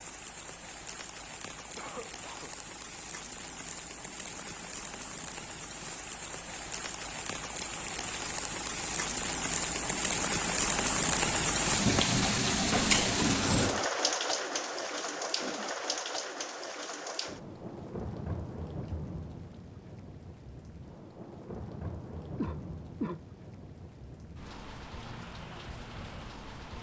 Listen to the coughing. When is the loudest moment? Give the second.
23 s.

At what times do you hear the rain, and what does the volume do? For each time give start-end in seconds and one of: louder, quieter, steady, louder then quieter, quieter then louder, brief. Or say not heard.
0.0-26.7 louder then quieter.